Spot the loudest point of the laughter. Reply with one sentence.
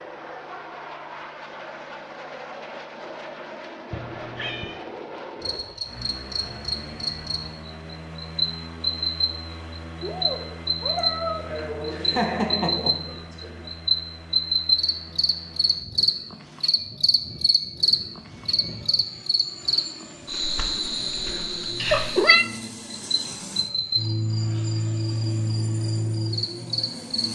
The loudest moment of the laughter is at 12 seconds.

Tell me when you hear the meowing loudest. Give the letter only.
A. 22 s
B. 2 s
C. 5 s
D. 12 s
A.